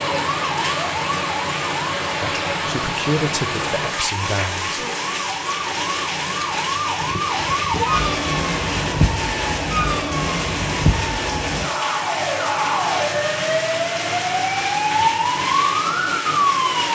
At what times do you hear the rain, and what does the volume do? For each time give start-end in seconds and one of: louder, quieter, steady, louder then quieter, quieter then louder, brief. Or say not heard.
0.0-16.9 steady.